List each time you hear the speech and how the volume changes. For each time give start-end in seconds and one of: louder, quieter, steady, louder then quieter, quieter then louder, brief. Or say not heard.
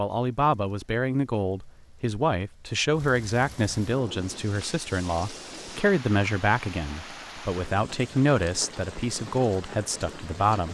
0.0-10.6 steady.